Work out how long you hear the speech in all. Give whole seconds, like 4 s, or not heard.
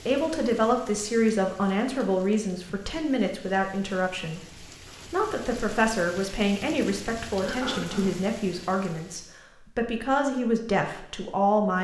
12 s.